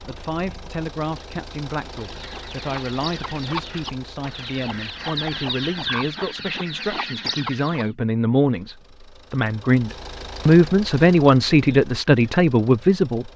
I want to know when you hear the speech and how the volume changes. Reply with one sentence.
The speech can be heard from 0.1 to 13.3 s, getting louder.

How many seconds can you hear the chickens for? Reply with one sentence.
You can hear the chickens for 6 seconds altogether.